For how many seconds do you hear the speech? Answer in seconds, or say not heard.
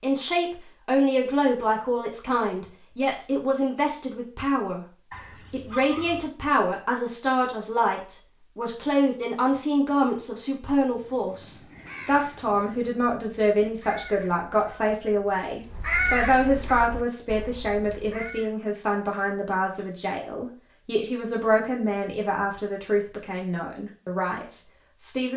25 s.